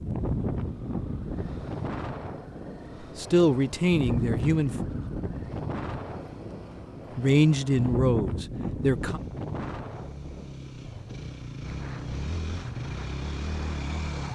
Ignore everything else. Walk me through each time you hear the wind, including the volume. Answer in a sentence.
You can hear the wind from 0.0 to 14.3 s, getting quieter.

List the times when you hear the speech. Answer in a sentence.
You can hear the speech from 3.1 to 4.7 s and from 7.2 to 9.2 s.